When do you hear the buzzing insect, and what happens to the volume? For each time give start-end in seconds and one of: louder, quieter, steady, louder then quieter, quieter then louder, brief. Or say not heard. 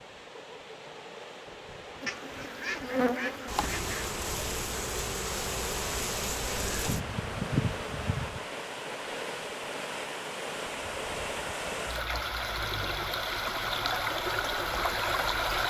2.0-8.6 steady.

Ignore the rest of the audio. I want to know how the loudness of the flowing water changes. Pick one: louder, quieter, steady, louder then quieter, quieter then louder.
louder.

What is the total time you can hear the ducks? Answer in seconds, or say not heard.
2 s.